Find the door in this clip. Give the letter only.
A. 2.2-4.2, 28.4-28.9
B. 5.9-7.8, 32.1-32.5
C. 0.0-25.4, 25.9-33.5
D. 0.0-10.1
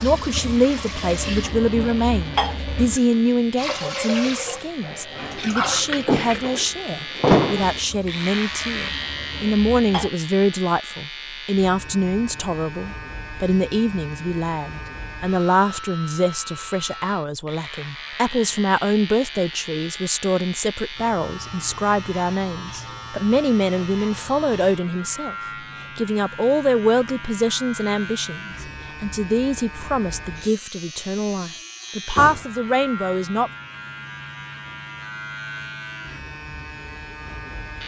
B.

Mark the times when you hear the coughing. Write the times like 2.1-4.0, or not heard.
not heard.